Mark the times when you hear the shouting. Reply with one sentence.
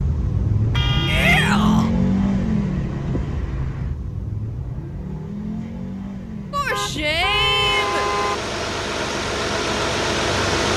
You can hear the shouting from 1.1 to 1.9 s and from 6.5 to 8.1 s.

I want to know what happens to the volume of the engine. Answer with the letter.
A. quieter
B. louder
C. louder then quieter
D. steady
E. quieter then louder
E.